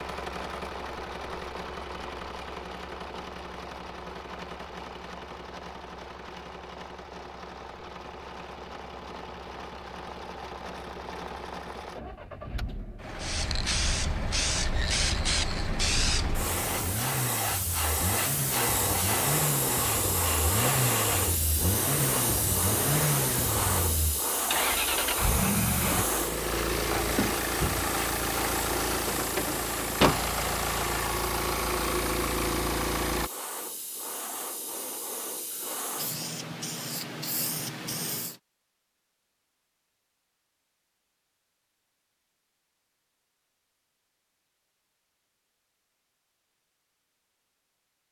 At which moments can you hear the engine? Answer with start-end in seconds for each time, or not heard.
0.0-33.3.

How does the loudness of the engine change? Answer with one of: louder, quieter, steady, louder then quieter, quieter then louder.
louder.